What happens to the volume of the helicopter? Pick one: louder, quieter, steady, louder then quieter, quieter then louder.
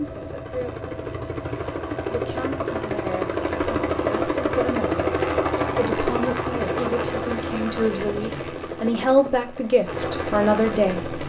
louder then quieter.